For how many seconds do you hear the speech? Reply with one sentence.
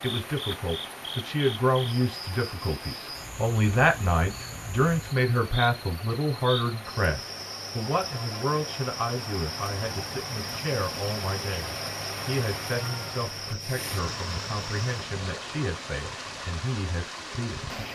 The speech can be heard for 18 seconds in total.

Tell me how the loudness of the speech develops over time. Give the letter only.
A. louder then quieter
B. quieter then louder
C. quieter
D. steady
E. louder
C.